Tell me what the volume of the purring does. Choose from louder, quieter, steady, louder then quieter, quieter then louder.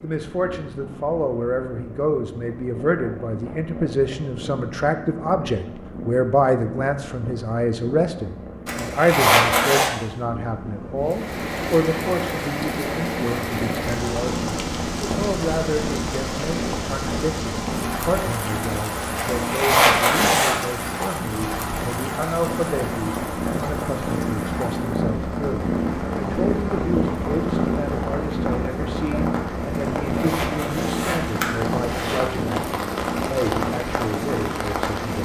louder.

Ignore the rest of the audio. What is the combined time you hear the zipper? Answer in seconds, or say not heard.
5 s.